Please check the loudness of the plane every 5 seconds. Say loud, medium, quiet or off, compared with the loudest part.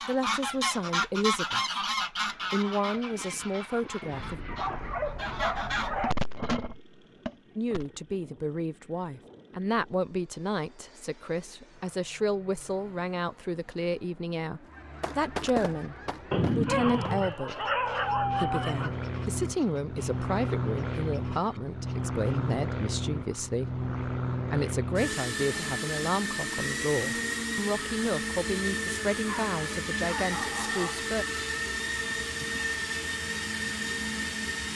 quiet, quiet, quiet, medium, loud, loud, loud.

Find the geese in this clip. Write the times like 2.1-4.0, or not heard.
0.0-7.8, 14.7-22.6.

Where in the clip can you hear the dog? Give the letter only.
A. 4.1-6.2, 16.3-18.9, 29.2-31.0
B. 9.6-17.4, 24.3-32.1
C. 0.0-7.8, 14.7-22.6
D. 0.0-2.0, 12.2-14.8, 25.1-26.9
A.